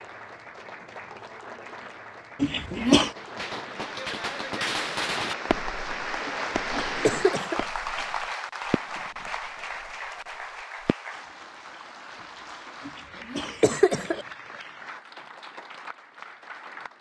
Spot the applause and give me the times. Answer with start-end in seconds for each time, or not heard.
0.0-16.9.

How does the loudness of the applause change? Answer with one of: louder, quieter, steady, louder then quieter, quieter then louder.
louder then quieter.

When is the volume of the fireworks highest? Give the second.
5 s.